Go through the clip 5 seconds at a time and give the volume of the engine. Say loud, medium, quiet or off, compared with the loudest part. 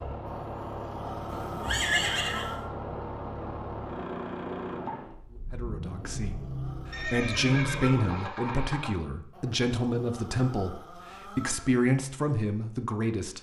loud, loud, off.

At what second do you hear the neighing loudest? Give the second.
2 s.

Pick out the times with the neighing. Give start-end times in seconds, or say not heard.
1.2-2.5, 6.9-8.9.